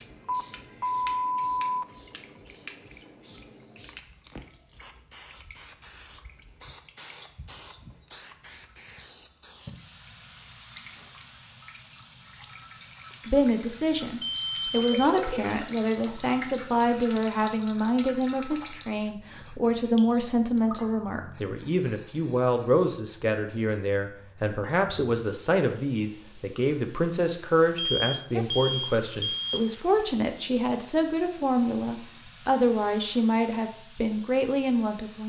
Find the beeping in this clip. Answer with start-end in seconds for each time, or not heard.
0.2-1.9, 14.2-15.6, 27.8-29.6.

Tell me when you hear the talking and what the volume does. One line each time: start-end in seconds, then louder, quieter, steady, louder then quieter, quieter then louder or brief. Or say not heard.
13.2-35.2 steady.